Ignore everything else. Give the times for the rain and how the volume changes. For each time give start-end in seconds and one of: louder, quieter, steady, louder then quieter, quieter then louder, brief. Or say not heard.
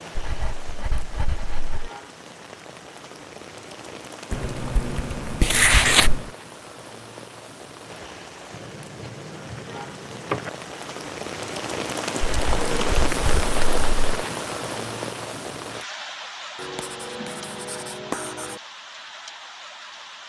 0.0-20.2 louder then quieter.